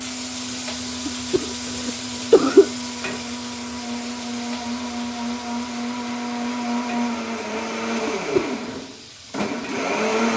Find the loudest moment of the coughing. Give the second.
2 s.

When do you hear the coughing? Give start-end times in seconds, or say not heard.
1.1-2.7, 8.1-8.8.